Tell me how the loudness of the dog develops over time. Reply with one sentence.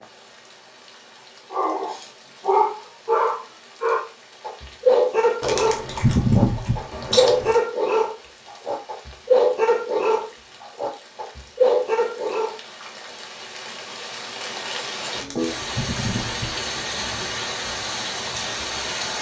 The volume of the dog stays about the same.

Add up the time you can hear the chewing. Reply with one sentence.
The chewing can be heard for 4 seconds in total.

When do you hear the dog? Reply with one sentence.
You can hear the dog from 1.5 to 12.6 s.